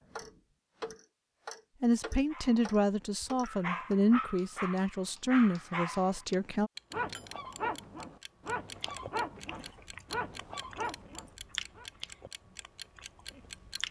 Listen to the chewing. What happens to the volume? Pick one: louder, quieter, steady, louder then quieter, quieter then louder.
louder then quieter.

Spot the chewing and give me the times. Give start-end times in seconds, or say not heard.
8.7-13.8.